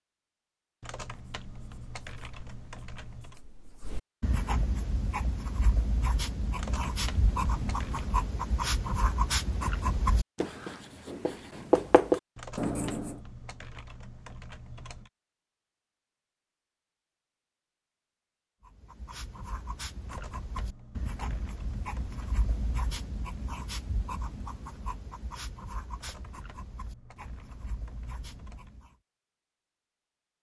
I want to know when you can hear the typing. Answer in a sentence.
You can hear the typing from 0.8 to 3.4 s, from 6.5 to 8.2 s, from 12.3 to 15.1 s, from 20.1 to 22.4 s and from 25.9 to 28.8 s.